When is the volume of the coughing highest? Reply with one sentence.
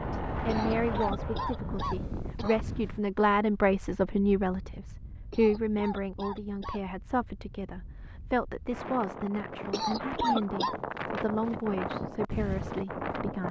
The volume of the coughing peaks at 10 seconds.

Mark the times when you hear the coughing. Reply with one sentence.
You can hear the coughing from 0.5 to 2.7 s, from 5.3 to 6.8 s and from 9.7 to 10.8 s.